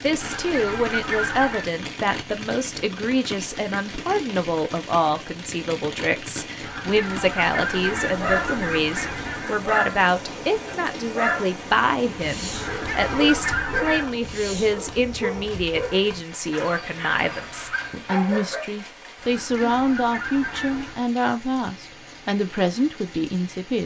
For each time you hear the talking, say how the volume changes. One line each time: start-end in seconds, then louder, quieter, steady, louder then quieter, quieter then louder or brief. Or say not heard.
0.0-23.8 steady.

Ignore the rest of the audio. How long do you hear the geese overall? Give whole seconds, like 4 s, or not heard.
8 s.